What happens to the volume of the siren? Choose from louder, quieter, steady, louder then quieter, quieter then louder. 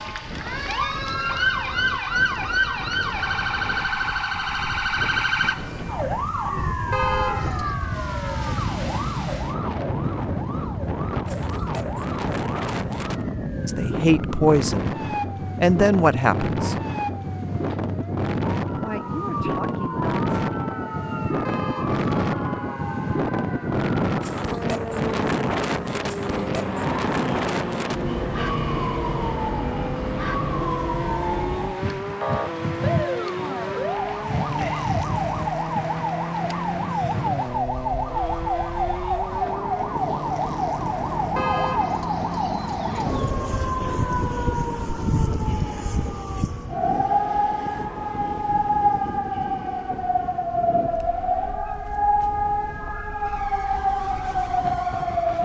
quieter then louder.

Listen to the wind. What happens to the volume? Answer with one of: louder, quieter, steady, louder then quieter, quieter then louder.
louder then quieter.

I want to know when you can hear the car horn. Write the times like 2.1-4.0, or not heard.
6.9-7.8, 21.4-22.1, 41.4-43.4.